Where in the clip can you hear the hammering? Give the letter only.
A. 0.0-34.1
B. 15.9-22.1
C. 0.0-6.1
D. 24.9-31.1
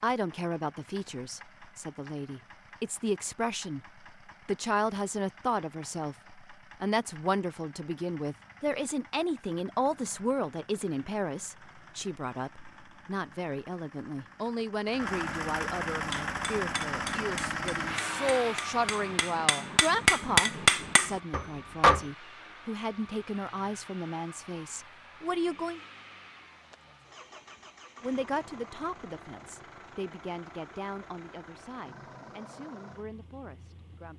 B.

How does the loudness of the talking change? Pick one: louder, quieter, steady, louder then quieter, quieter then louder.
quieter.